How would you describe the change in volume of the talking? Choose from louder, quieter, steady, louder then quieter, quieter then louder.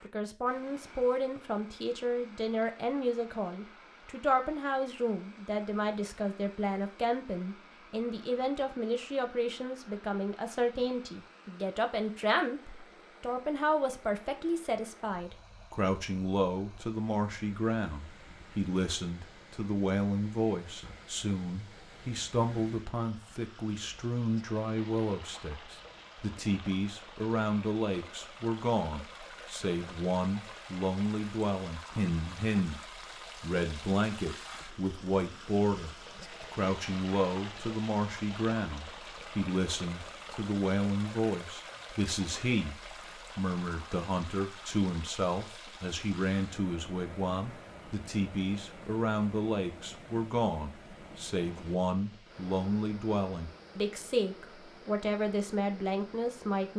steady.